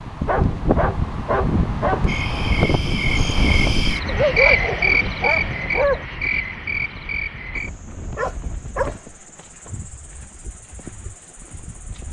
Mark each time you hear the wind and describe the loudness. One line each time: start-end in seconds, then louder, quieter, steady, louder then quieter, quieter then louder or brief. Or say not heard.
0.0-9.0 quieter.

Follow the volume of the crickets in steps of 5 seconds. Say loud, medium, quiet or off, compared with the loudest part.
loud, medium, quiet.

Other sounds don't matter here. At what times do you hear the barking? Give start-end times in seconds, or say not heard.
0.2-2.1, 4.0-6.0, 8.2-8.9.